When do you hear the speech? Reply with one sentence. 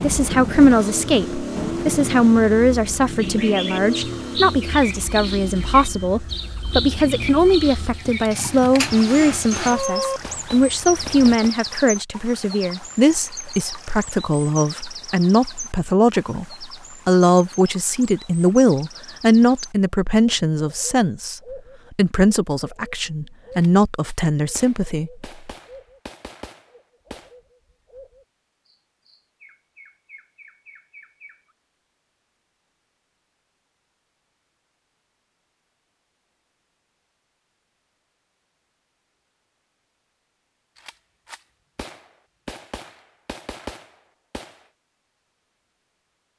You can hear the speech from 0.0 to 25.1 s.